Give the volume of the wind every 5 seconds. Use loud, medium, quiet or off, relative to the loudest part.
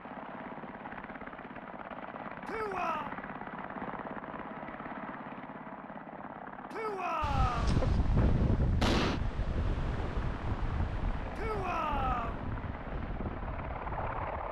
off, loud, medium.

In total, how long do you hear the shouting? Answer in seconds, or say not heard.
3 s.